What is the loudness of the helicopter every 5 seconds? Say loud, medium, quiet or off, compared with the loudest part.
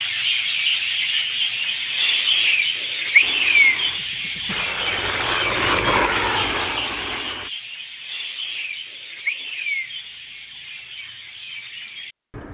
medium, loud, off.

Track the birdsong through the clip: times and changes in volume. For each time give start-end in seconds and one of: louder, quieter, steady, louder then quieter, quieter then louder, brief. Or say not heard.
0.0-12.5 quieter.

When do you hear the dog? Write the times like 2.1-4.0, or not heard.
not heard.